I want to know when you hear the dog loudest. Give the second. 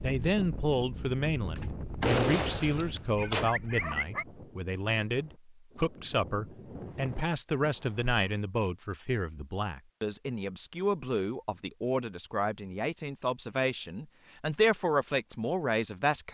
4 s.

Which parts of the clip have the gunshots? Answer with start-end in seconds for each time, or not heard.
1.6-3.5.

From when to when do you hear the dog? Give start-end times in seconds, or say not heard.
2.3-4.2.